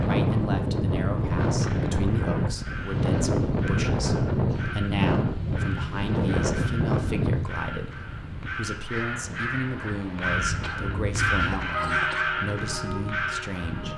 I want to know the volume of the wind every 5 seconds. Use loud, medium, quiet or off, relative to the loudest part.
loud, loud, quiet.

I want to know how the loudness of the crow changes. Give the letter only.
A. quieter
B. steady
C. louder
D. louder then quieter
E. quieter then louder
C.